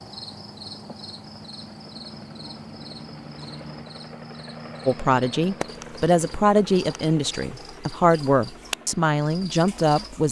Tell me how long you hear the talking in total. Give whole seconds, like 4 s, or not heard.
5 s.